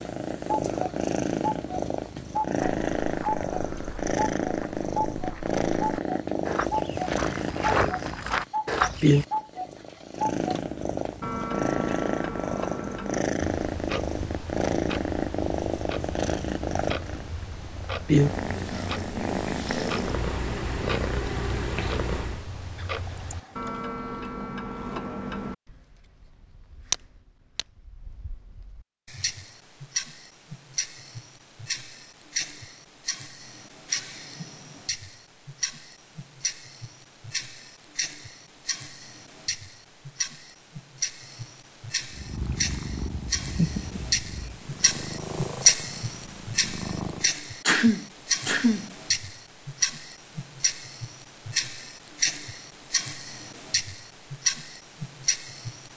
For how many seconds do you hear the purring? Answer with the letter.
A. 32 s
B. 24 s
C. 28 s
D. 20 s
C.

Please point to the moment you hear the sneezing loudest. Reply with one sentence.
The volume of the sneezing peaks at 48 seconds.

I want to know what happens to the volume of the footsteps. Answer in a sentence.
The volume of the footsteps goes up.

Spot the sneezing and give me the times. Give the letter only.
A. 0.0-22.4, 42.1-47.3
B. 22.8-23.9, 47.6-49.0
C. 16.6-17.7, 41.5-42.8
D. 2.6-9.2
B.